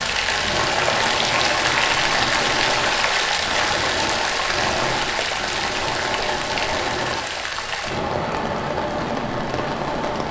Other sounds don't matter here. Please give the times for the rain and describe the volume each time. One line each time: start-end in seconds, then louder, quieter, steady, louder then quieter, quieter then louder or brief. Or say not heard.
0.0-10.2 quieter.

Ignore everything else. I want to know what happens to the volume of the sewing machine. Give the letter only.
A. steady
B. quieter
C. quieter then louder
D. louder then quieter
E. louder
A.